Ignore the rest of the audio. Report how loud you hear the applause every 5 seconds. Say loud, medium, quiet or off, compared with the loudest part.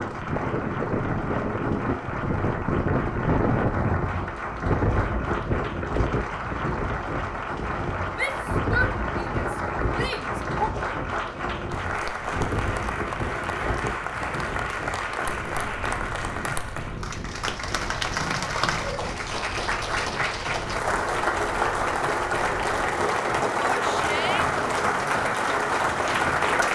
medium, medium, medium, medium, loud, loud.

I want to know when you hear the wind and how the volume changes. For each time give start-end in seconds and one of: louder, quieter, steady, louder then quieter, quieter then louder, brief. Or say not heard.
0.0-26.7 quieter.